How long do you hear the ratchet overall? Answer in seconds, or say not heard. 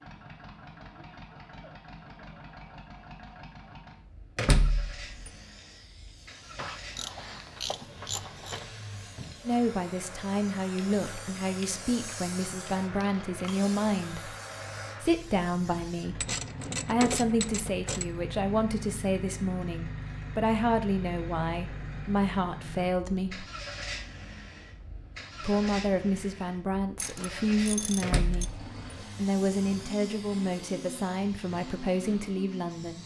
6 s.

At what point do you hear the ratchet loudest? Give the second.
17 s.